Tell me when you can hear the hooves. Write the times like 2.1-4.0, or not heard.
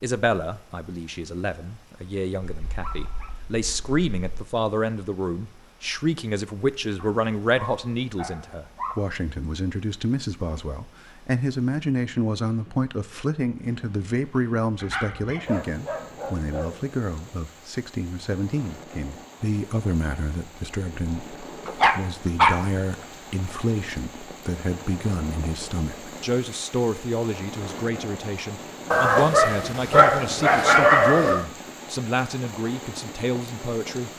not heard.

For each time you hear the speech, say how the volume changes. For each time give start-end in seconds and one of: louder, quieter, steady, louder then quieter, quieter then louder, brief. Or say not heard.
0.0-34.1 steady.